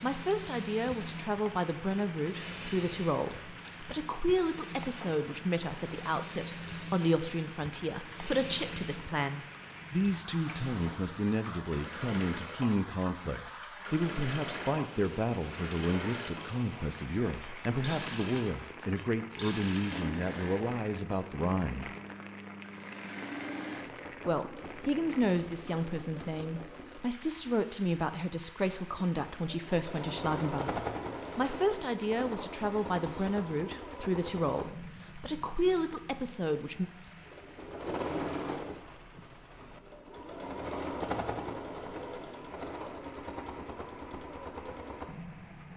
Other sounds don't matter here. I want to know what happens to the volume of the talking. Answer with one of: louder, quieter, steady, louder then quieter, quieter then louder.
steady.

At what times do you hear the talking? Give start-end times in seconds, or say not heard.
0.0-21.9, 24.2-36.9.